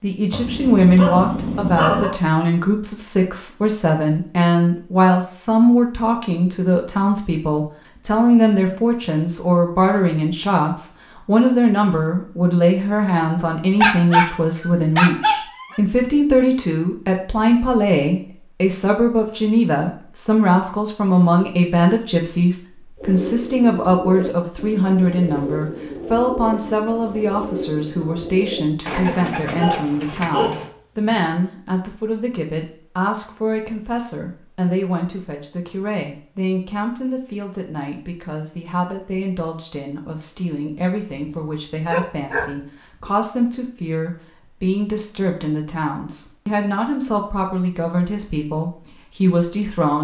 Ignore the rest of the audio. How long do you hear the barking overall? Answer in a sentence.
The barking can be heard for 6 seconds in total.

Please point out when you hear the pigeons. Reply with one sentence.
The pigeons can be heard from 22.9 to 30.7 s.